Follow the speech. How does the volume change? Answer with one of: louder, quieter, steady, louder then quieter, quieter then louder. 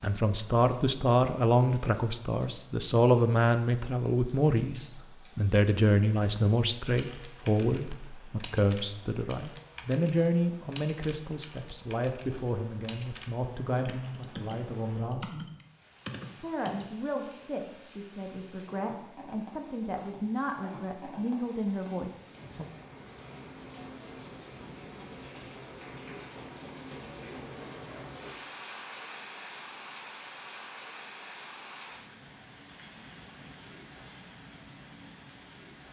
quieter.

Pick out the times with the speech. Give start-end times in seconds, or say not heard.
0.0-15.4, 16.4-22.6.